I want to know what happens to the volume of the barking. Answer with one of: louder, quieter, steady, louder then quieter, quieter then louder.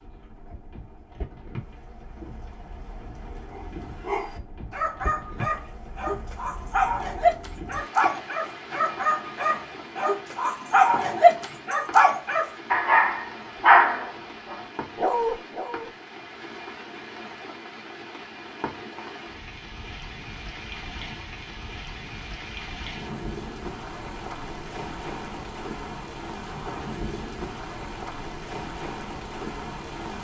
louder.